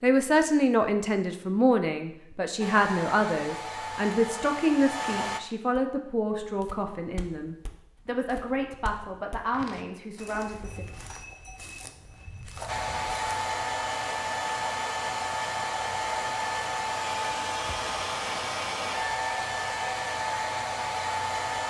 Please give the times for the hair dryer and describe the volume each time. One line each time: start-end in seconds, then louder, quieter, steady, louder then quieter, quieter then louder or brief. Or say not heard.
2.6-5.4 brief
12.7-21.6 steady.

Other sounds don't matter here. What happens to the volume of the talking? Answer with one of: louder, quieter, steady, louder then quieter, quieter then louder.
quieter.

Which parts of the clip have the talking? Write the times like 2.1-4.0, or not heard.
0.0-10.8.